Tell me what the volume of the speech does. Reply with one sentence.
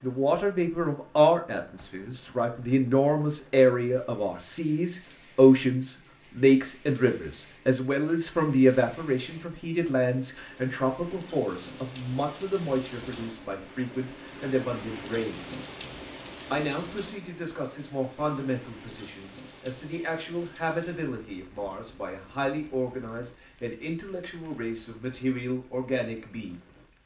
The loudness of the speech goes down.